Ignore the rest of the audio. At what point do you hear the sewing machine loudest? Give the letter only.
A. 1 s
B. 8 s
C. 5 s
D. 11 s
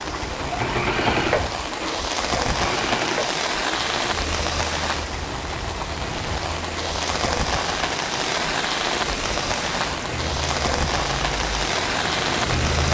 A.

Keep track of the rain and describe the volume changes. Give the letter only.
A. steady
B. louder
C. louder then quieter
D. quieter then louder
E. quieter
A.